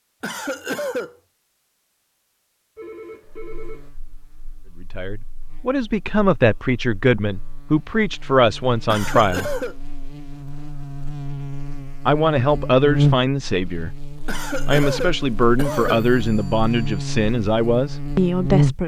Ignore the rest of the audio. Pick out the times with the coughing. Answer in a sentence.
The coughing can be heard from 0.2 to 1.1 s, from 8.8 to 9.8 s and from 14.2 to 16.1 s.